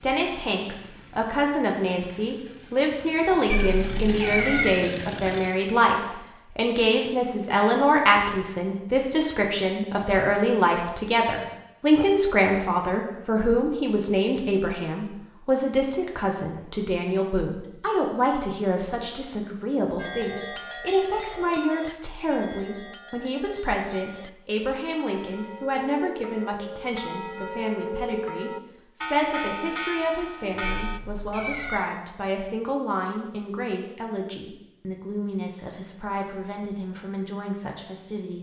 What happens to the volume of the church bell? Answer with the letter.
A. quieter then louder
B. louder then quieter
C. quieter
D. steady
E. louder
A.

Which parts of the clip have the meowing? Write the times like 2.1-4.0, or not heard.
3.5-4.8, 30.6-31.9.